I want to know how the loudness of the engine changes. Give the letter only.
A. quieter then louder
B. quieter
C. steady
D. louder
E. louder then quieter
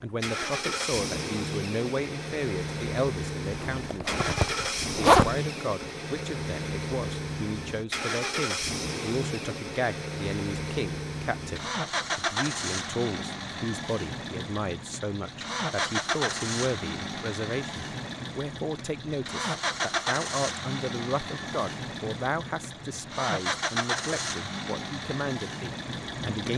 C.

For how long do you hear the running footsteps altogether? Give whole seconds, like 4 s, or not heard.
not heard.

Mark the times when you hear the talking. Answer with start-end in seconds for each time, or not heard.
0.0-4.2, 5.0-26.5.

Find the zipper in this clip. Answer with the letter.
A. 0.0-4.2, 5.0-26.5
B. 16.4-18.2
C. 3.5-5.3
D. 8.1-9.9
C.